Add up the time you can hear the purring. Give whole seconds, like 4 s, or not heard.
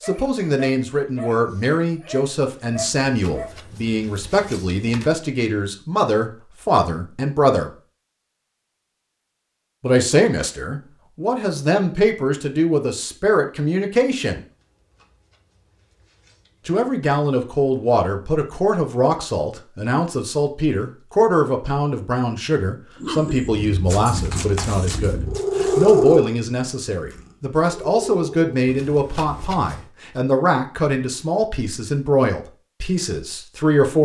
5 s.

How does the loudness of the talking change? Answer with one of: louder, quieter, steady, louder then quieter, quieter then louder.
steady.